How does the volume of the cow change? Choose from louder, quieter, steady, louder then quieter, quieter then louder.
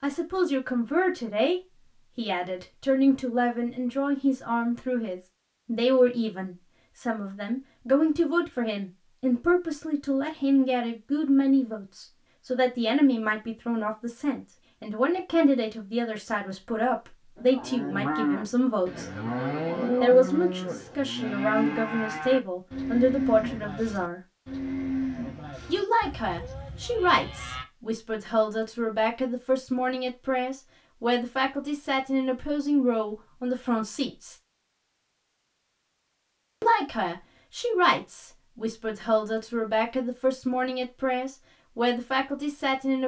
quieter.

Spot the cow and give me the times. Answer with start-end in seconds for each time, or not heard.
17.4-27.6.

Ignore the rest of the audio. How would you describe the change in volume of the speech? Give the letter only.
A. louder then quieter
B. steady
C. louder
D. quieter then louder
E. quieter
B.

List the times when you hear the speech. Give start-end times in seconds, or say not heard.
0.0-19.1, 20.0-24.2, 25.6-34.4, 36.6-43.0.